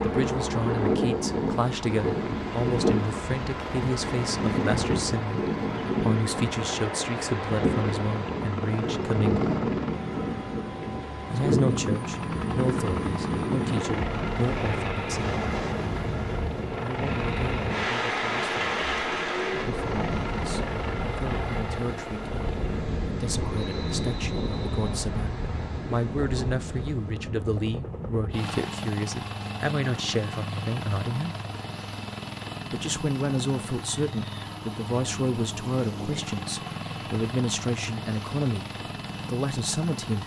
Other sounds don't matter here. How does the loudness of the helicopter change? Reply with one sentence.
The volume of the helicopter stays about the same.